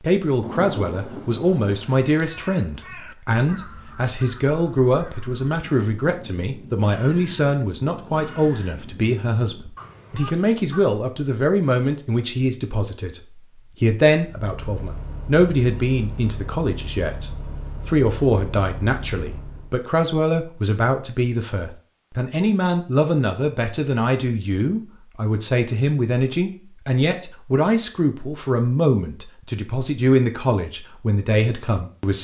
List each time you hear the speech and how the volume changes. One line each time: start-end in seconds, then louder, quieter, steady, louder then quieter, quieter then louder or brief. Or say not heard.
0.0-32.2 steady.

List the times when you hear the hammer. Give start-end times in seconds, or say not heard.
not heard.